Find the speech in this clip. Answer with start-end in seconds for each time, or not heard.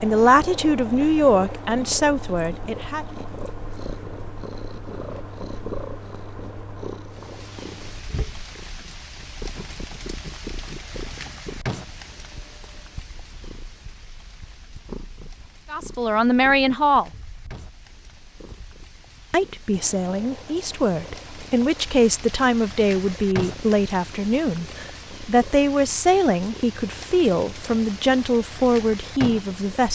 0.0-3.0, 15.7-17.1, 19.3-29.9.